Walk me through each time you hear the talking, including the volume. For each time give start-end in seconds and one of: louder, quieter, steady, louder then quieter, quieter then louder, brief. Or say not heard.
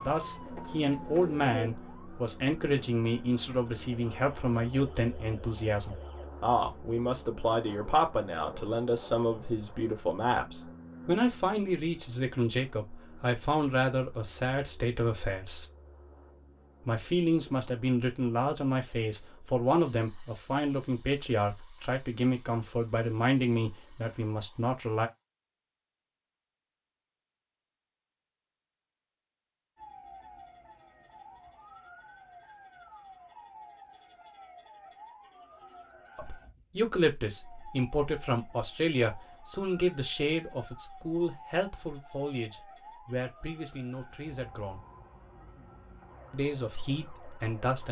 0.0-15.7 steady
16.9-25.1 steady
36.1-44.8 quieter
46.3-47.8 brief.